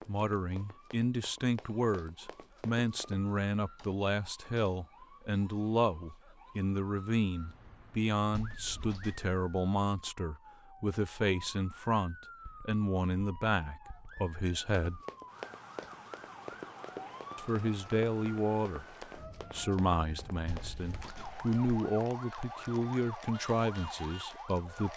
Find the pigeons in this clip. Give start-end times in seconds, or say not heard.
not heard.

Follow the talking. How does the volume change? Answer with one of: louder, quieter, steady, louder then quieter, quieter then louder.
steady.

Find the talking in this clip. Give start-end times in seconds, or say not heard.
0.1-15.0, 17.4-24.9.